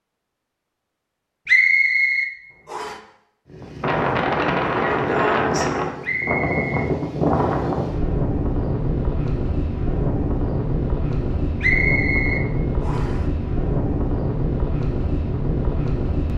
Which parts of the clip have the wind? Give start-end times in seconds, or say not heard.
3.5-16.3.